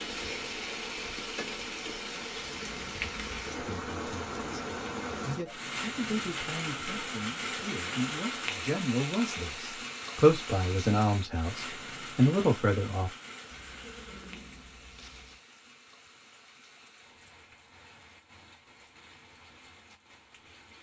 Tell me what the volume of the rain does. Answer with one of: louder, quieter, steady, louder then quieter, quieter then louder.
quieter.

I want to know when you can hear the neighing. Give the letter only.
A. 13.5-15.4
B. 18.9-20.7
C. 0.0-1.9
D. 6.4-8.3
A.